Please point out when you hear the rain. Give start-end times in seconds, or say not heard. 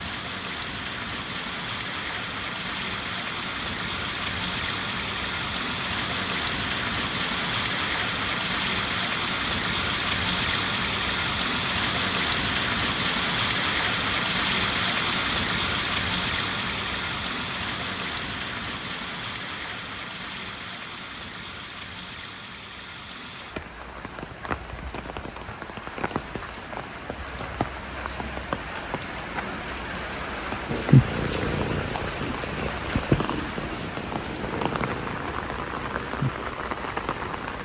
0.0-37.6.